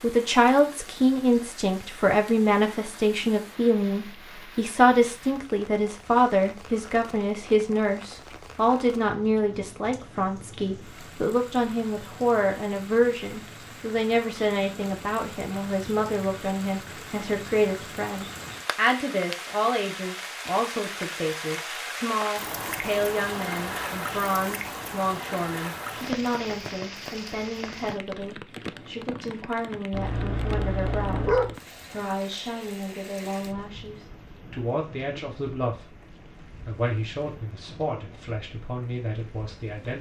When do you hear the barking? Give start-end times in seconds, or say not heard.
29.9-31.6.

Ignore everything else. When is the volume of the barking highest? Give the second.
31 s.